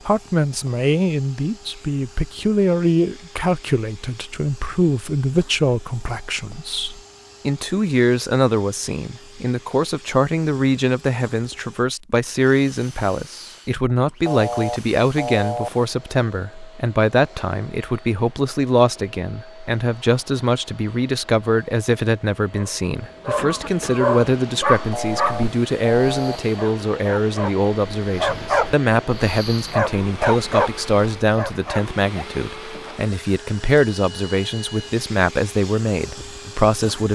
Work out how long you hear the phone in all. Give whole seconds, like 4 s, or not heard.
3 s.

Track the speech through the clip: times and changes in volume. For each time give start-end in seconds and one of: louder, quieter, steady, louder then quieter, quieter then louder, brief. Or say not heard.
0.1-37.1 steady.